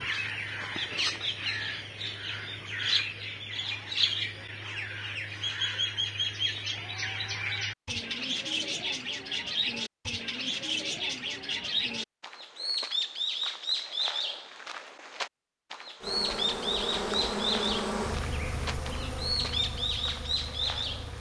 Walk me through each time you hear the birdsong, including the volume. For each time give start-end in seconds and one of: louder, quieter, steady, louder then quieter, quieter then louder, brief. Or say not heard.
0.0-21.1 steady.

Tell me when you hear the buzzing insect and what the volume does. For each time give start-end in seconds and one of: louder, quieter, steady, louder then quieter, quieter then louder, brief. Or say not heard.
16.0-21.1 quieter.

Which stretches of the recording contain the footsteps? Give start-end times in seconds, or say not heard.
not heard.